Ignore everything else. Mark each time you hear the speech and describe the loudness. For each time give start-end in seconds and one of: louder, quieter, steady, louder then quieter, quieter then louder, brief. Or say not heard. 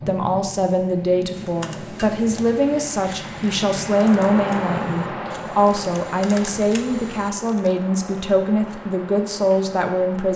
0.1-10.3 steady.